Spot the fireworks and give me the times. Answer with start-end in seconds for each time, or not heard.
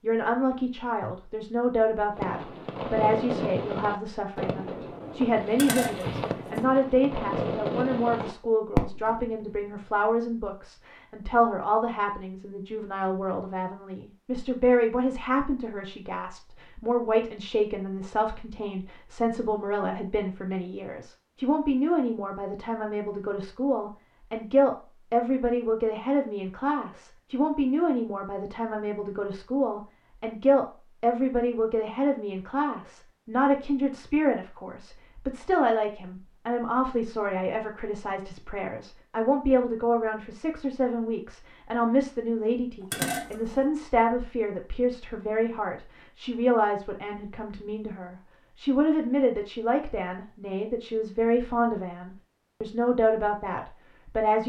2.1-9.6.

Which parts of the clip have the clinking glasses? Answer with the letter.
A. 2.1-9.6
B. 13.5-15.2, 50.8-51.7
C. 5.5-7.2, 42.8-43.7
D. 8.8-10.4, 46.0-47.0
C.